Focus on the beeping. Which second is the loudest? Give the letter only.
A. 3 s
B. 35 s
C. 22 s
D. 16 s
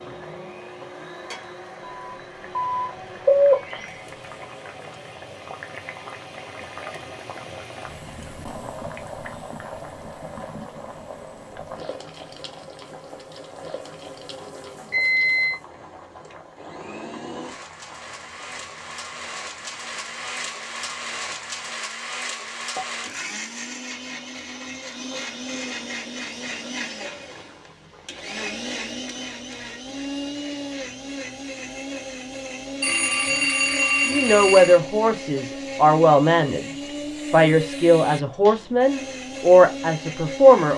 A.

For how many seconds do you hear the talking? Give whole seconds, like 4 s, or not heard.
6 s.